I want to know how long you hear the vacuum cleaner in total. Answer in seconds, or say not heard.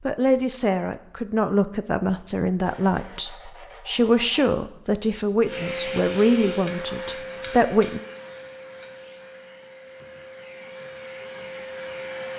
7 s.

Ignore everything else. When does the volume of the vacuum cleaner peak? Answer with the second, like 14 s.
6 s.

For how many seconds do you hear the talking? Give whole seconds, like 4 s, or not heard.
8 s.